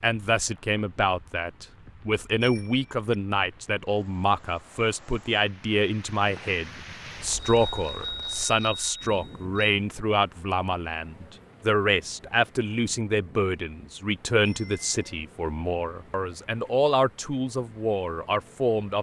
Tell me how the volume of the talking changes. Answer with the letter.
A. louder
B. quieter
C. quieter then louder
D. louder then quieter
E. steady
E.